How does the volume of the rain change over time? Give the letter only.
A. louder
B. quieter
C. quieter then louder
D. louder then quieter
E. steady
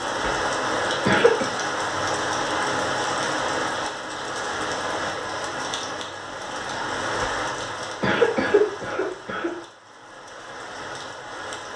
B.